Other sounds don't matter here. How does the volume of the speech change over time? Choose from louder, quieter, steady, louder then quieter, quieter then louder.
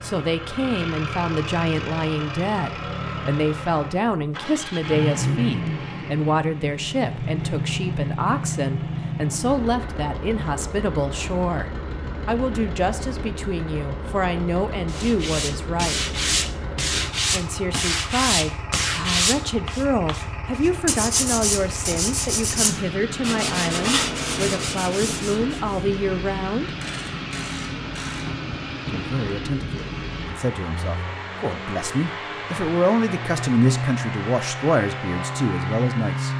steady.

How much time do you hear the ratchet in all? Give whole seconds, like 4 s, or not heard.
2 s.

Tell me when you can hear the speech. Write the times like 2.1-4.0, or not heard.
0.0-16.1, 17.3-26.7, 28.9-36.3.